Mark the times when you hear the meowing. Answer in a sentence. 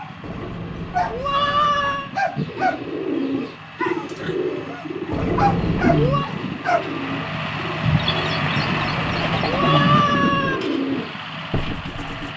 You can hear the meowing from 0.2 to 2.1 s, from 5.1 to 6.3 s and from 8.6 to 10.6 s.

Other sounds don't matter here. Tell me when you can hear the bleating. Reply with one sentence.
You can hear the bleating from 7.8 to 9.8 s.